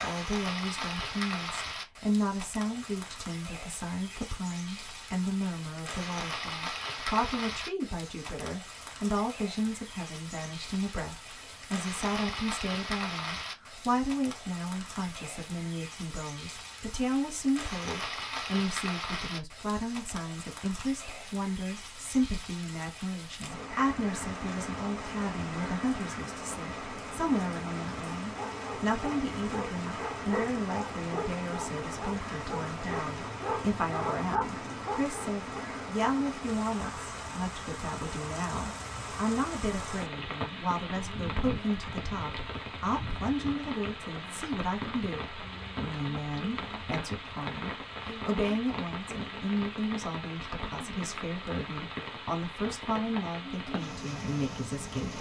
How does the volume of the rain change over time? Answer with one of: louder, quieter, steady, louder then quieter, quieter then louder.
steady.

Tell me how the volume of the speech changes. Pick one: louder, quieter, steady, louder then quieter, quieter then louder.
steady.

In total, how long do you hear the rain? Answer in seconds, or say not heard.
55 s.